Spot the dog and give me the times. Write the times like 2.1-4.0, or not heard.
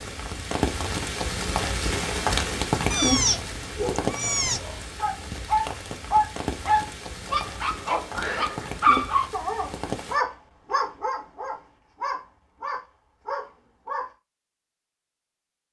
3.8-14.1.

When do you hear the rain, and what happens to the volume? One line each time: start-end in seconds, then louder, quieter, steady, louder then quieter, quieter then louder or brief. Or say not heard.
0.0-10.2 quieter.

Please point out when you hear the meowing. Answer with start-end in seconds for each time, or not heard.
2.9-4.6.